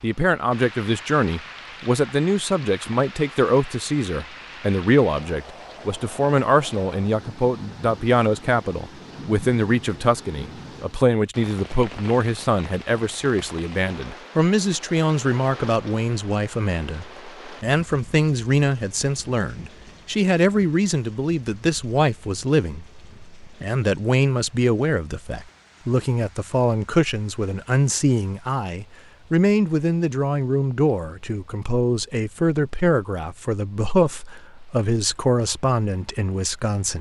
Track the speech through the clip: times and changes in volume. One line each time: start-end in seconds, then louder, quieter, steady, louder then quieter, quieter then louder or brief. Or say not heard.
0.0-36.9 steady.